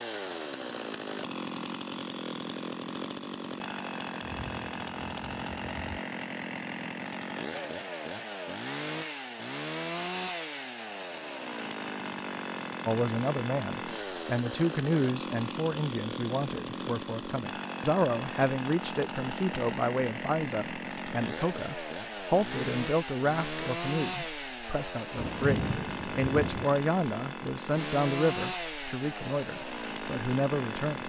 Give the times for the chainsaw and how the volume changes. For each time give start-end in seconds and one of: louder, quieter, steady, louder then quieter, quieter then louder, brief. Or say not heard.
0.0-31.0 steady.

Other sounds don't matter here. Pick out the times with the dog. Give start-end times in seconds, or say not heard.
not heard.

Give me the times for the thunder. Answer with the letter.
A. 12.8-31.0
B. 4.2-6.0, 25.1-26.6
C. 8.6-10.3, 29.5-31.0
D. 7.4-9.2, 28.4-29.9
B.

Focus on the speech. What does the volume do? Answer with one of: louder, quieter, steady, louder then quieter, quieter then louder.
steady.